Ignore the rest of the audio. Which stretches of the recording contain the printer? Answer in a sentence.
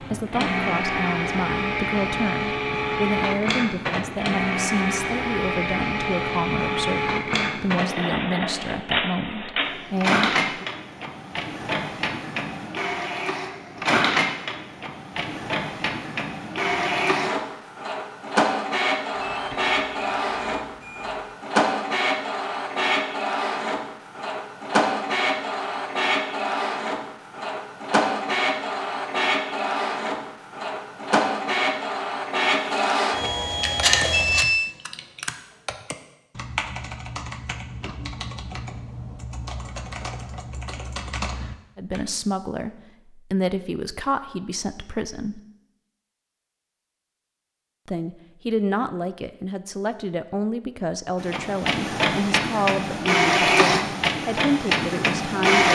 You can hear the printer from 0.0 to 34.5 s and from 51.2 to 55.7 s.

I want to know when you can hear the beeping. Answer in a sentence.
The beeping can be heard from 19.1 to 21.4 s and from 34.1 to 34.8 s.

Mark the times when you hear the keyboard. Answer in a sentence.
You can hear the keyboard from 33.8 to 42.0 s.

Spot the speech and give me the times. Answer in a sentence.
The speech can be heard from 0.0 to 10.7 s, from 41.8 to 45.4 s and from 47.9 to 55.7 s.